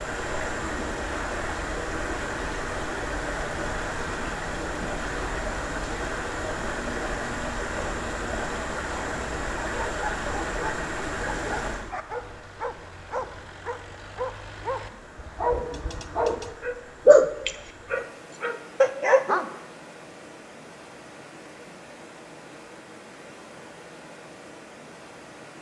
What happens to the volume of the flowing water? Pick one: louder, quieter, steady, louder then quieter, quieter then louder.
quieter.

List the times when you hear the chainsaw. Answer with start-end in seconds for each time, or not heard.
not heard.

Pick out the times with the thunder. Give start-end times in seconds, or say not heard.
not heard.